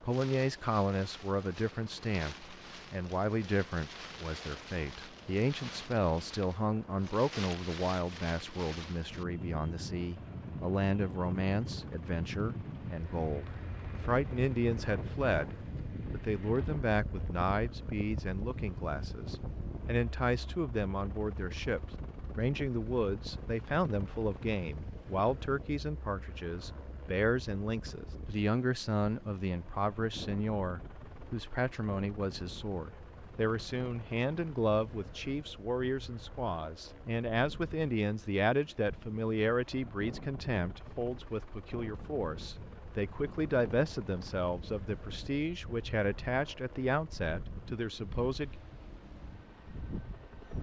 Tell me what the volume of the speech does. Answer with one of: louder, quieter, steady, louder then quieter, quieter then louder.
steady.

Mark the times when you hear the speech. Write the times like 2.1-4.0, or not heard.
0.0-48.5.